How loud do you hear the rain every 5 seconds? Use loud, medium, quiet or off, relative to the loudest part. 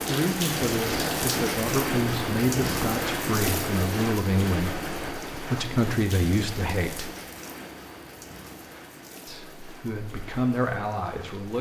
loud, medium, quiet.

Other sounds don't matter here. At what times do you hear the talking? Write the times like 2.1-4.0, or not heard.
0.0-7.1, 9.2-11.5.